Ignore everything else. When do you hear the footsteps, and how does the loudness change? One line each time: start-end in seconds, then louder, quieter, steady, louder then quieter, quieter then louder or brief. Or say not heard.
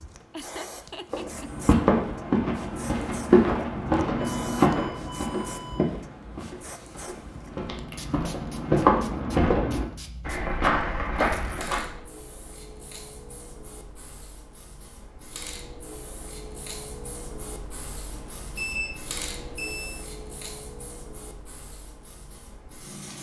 1.1-11.9 quieter then louder.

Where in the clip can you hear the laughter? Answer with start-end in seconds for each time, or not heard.
0.3-1.6.